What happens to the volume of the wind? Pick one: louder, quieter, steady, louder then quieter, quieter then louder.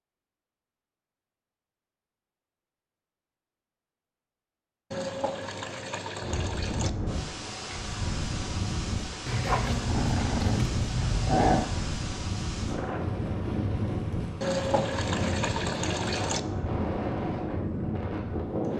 steady.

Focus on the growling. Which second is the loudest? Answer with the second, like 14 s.
11 s.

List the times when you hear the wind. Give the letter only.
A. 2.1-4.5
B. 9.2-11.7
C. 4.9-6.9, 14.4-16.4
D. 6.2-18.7
D.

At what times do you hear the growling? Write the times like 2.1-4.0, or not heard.
9.2-11.7.